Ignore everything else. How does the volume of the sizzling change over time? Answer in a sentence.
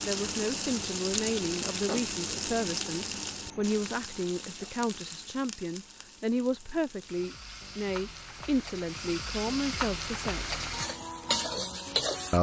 The volume of the sizzling goes down, then up.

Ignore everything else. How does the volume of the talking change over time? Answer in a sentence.
The loudness of the talking stays about the same.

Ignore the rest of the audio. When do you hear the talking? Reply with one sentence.
You can hear the talking from 0.0 to 10.6 s.